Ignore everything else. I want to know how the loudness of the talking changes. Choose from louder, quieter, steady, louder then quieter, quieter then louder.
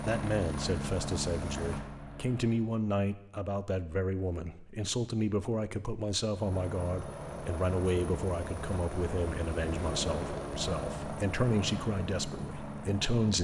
steady.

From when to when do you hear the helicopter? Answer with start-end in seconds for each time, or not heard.
0.0-2.6, 6.3-13.3.